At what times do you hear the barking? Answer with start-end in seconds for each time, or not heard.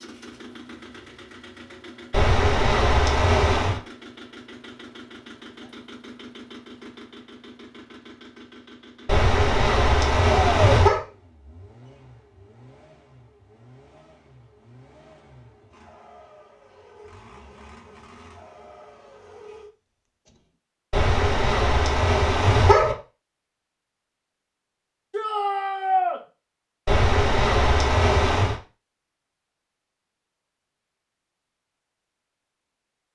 2.1-3.8, 9.1-11.1, 20.9-22.9, 26.9-28.6.